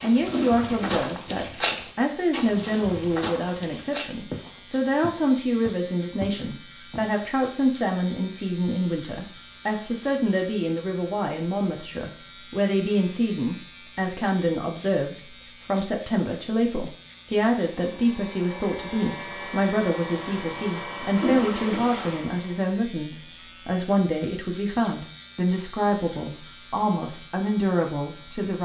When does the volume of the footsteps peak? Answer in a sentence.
The volume of the footsteps peaks at 2 seconds.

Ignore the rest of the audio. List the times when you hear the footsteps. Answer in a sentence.
You can hear the footsteps from 0.0 to 7.1 s.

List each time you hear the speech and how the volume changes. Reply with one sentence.
The speech can be heard from 0.0 to 28.6 s, at a steady volume.